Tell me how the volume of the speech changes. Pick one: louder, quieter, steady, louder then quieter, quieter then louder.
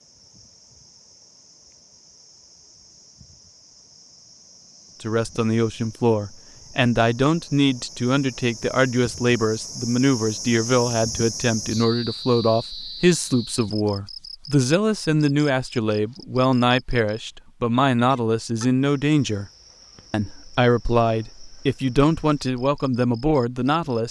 steady.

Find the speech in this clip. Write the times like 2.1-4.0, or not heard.
5.0-19.4, 20.1-24.0.